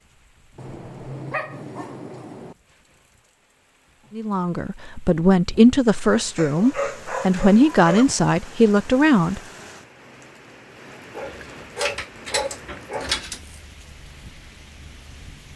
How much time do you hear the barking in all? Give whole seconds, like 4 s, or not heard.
6 s.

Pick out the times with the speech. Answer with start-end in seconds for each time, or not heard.
4.2-9.4.